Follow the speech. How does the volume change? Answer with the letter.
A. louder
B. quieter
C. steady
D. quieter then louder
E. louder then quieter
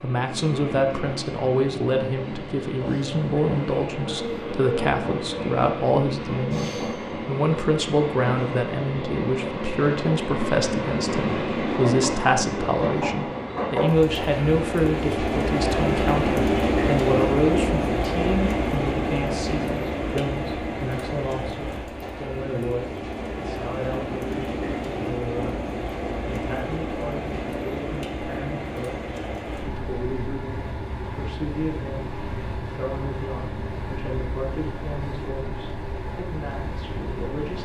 B.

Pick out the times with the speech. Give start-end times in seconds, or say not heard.
0.0-37.6.